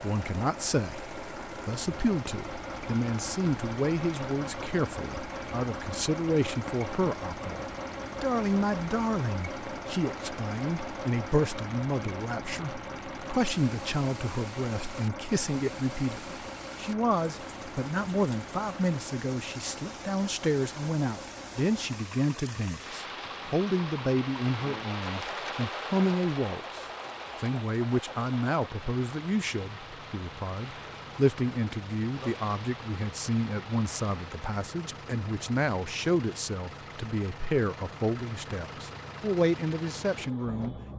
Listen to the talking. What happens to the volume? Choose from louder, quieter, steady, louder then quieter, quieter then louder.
steady.